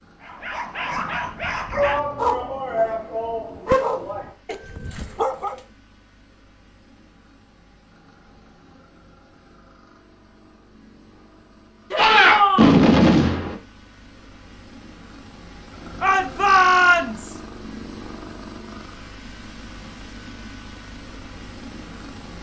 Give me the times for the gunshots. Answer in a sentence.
The gunshots can be heard from 11.9 to 13.6 s.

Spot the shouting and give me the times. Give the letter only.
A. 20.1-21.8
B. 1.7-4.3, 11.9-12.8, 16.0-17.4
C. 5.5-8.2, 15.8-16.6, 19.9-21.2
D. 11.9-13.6
B.